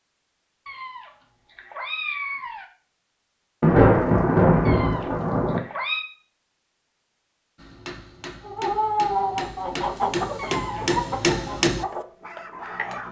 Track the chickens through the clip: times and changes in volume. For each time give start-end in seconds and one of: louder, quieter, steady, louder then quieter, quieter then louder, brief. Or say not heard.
8.4-13.0 quieter.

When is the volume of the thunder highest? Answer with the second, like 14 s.
4 s.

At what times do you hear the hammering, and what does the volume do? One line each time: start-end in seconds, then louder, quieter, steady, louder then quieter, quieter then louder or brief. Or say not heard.
7.5-13.0 louder.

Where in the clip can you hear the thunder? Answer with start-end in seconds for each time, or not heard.
3.6-5.6.